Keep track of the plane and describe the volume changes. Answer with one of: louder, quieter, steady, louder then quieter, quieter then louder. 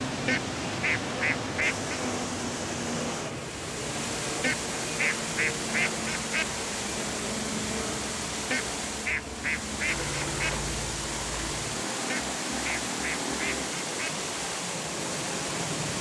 steady.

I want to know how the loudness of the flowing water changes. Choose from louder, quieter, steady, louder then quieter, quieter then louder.
steady.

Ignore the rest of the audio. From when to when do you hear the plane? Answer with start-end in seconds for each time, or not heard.
0.0-15.9.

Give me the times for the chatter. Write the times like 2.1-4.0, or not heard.
not heard.